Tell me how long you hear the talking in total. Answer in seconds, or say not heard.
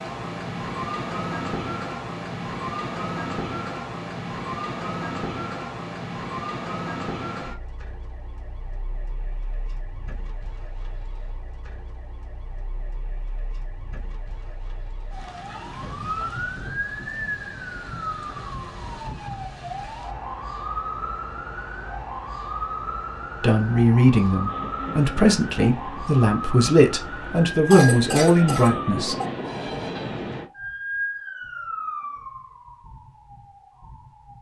6 s.